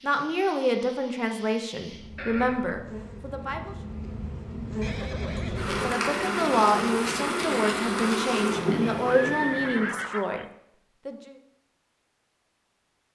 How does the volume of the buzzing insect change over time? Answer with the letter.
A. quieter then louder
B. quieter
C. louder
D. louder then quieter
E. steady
C.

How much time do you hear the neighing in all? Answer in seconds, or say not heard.
3 s.